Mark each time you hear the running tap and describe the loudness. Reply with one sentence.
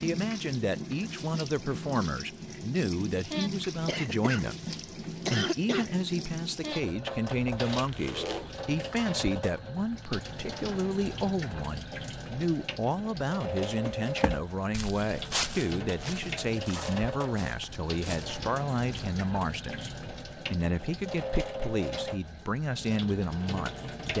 The running tap can be heard from 0.0 to 24.1 s, at a steady volume.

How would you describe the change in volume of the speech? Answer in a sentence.
The loudness of the speech stays about the same.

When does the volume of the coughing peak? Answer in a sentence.
The volume of the coughing peaks at 5 seconds.